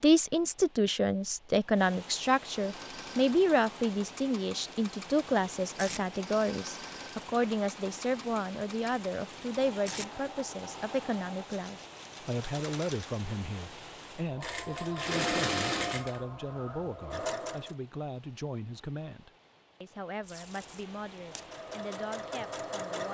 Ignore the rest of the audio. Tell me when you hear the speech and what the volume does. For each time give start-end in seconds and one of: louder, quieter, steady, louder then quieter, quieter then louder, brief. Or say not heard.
0.0-23.1 quieter.